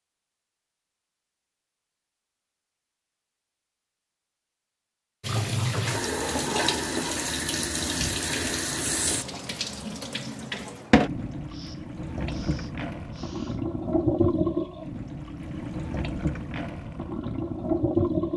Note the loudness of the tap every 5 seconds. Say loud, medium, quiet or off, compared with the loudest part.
off, loud, loud, loud.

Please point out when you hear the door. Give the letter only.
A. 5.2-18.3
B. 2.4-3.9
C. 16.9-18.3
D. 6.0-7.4
D.